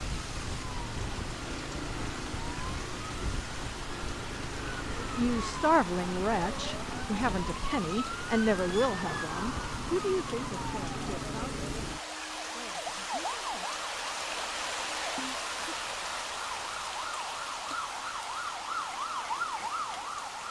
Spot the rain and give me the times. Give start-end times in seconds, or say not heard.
0.0-20.4.